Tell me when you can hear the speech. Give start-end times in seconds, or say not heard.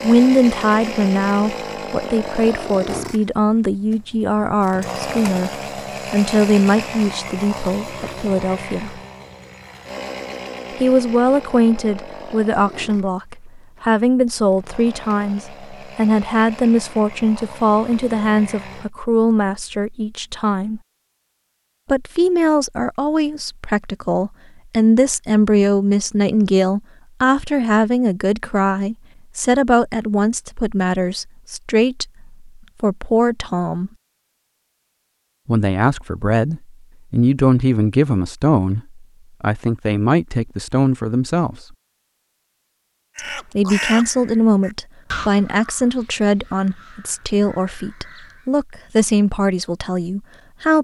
0.0-9.0, 10.8-20.8, 21.9-33.9, 35.5-41.8, 43.1-50.7.